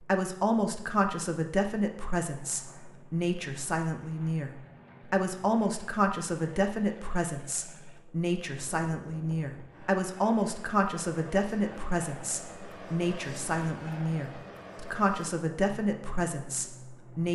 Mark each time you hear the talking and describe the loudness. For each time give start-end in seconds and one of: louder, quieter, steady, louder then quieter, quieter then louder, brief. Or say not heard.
0.0-17.2 steady.